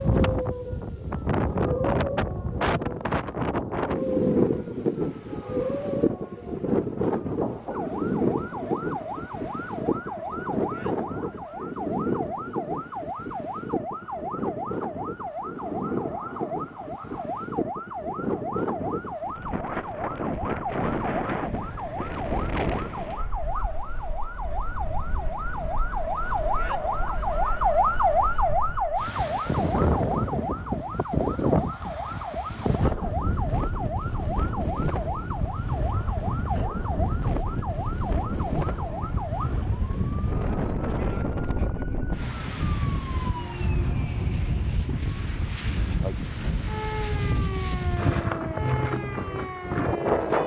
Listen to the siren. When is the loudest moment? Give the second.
28 s.